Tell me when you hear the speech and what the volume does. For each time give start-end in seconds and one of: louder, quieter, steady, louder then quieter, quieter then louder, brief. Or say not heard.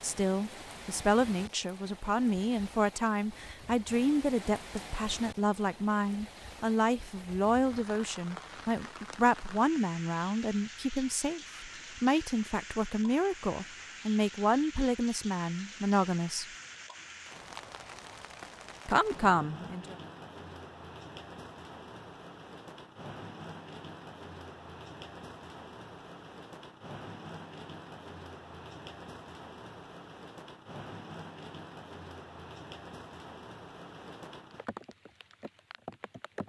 0.0-16.4 steady
18.9-19.9 brief.